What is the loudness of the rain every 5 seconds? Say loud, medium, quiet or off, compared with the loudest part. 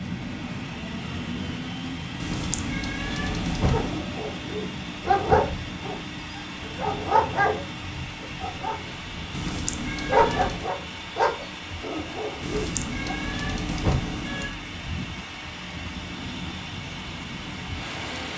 loud, loud, medium, loud.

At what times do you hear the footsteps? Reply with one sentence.
You can't hear the footsteps here.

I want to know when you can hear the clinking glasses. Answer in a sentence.
You can't hear the clinking glasses here.